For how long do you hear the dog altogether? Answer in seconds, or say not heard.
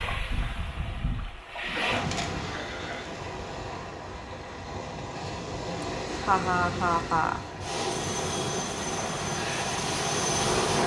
not heard.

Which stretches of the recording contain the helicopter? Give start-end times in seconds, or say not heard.
7.9-10.8.